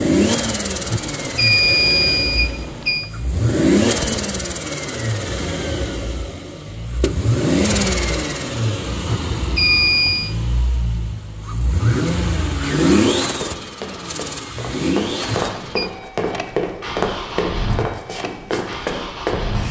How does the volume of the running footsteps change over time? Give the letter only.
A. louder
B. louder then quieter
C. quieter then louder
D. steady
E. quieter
A.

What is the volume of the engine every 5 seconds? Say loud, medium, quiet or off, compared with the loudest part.
loud, loud, loud, medium.